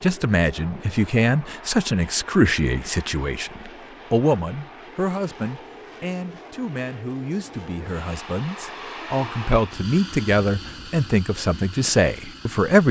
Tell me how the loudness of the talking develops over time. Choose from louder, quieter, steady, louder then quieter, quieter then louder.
quieter then louder.